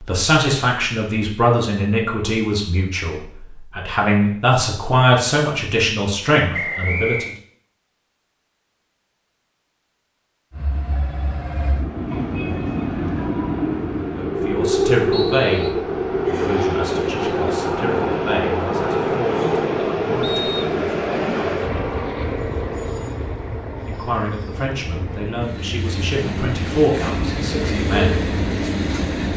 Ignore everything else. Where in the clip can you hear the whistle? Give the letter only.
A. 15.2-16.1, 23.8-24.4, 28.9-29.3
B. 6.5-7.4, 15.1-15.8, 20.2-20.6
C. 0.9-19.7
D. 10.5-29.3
B.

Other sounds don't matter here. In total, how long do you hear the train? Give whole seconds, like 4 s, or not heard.
19 s.